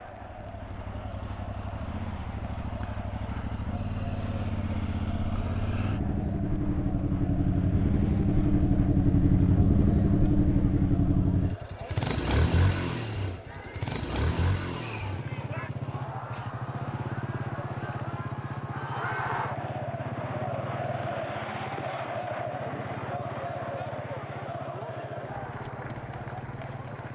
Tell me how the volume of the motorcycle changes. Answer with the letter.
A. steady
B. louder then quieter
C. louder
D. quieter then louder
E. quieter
B.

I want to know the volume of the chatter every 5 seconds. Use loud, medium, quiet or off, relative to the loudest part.
medium, medium, medium, loud, loud, medium.